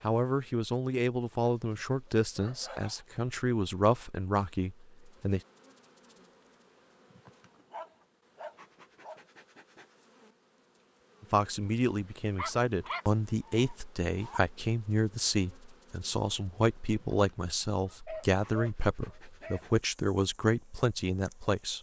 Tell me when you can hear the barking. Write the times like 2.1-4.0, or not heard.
1.6-3.0, 7.7-9.2, 12.3-14.4, 17.9-19.6.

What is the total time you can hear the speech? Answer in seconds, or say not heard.
16 s.